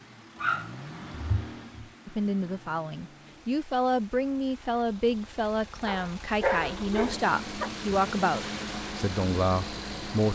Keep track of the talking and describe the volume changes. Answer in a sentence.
The loudness of the talking stays about the same.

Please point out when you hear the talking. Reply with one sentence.
The talking can be heard from 2.0 to 10.3 s.